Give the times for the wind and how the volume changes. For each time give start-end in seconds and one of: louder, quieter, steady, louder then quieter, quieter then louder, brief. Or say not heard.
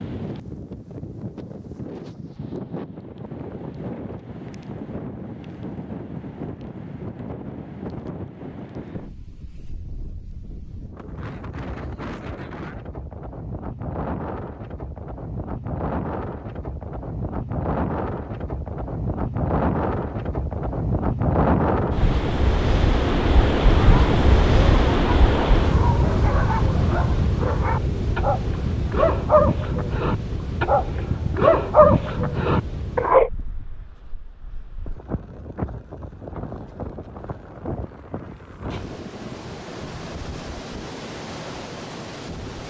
0.0-42.6 louder then quieter.